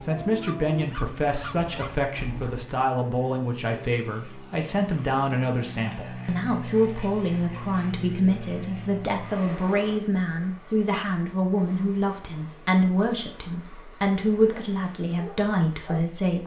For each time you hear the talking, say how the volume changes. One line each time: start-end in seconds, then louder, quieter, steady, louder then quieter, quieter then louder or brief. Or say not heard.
0.0-16.4 steady.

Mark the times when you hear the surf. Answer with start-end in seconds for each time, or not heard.
not heard.